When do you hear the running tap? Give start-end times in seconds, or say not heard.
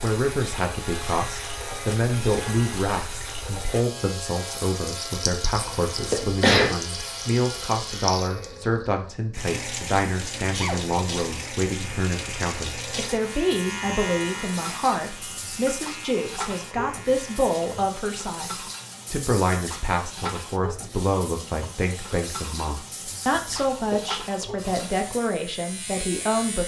0.0-25.2.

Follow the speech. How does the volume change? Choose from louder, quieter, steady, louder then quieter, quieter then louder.
steady.